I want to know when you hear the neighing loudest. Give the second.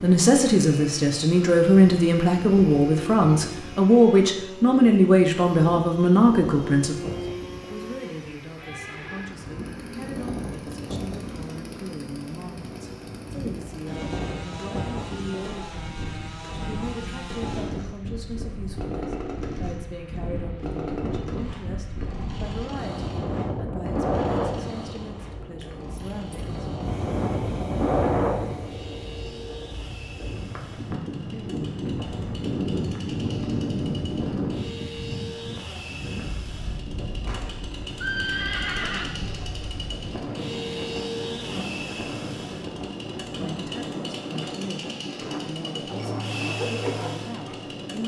38 s.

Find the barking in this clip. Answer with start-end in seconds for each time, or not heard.
45.9-47.8.